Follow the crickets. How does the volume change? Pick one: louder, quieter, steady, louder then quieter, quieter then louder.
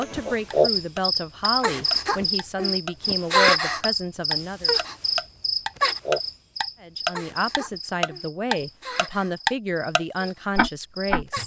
quieter.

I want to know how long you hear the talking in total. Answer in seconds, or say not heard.
9 s.